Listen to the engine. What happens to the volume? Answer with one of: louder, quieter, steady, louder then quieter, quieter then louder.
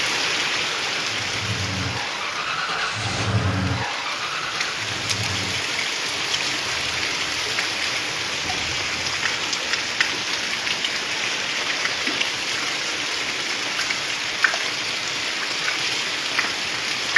louder then quieter.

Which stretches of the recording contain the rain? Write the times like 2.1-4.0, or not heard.
0.0-17.1.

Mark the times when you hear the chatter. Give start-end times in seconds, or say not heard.
not heard.